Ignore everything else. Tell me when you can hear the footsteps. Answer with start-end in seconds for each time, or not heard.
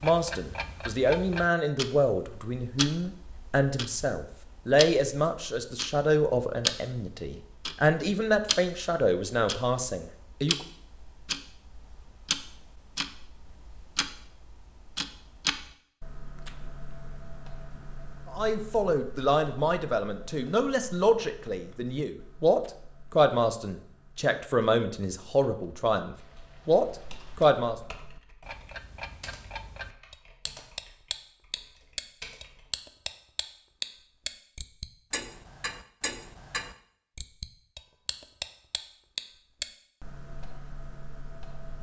not heard.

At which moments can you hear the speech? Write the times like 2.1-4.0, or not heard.
0.0-10.7, 18.3-27.8.